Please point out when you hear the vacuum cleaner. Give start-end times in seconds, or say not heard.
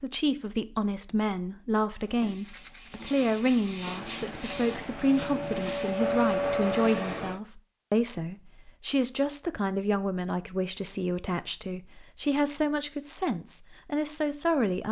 3.9-7.4.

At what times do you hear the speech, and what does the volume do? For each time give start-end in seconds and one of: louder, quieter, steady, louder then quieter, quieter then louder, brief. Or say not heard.
0.0-14.8 steady.